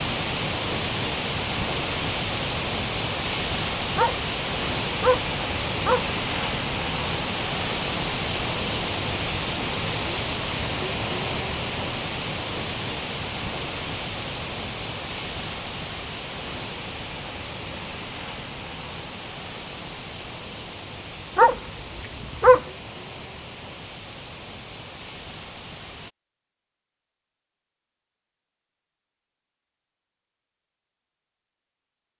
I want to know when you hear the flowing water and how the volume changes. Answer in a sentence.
You can hear the flowing water from 0.0 to 26.1 s, getting quieter.